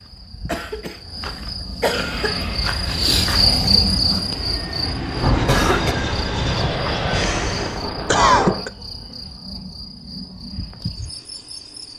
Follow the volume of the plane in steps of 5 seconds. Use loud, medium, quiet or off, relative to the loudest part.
medium, loud, off.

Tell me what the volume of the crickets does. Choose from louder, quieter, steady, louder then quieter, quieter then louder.
louder then quieter.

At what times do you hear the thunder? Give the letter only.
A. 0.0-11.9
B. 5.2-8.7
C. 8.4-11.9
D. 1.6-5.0
B.